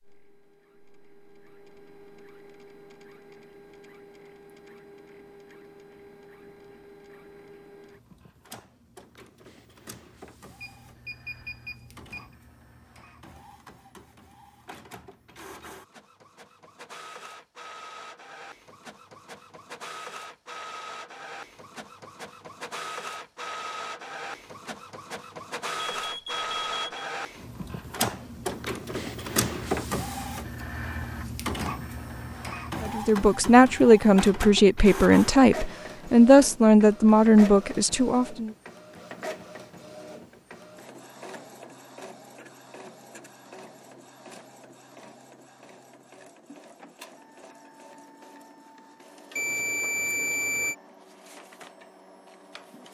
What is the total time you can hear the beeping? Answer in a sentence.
The beeping can be heard for 4 seconds in total.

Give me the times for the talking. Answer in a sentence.
You can hear the talking from 32.8 to 38.5 s.